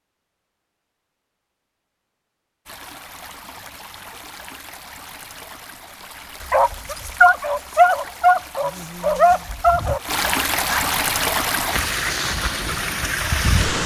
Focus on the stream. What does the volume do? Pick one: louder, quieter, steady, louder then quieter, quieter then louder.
louder.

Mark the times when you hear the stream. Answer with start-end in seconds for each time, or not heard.
2.6-13.8.